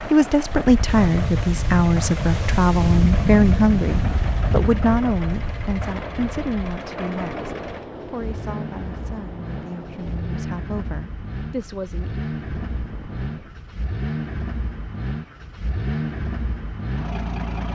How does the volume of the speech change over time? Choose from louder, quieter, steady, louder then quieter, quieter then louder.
quieter.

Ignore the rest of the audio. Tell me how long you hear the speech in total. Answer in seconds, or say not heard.
12 s.